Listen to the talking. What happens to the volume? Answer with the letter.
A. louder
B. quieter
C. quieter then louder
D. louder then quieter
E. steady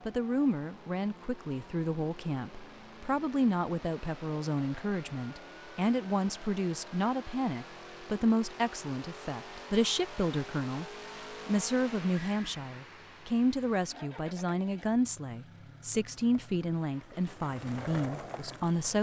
E.